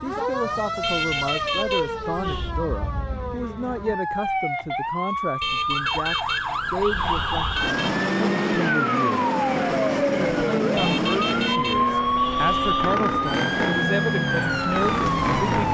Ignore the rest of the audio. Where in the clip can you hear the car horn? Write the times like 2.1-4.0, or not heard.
0.8-2.5, 5.4-8.1, 10.8-13.0.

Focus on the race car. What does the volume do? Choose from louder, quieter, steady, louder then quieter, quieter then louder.
steady.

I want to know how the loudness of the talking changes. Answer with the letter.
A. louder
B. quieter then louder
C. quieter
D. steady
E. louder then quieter
D.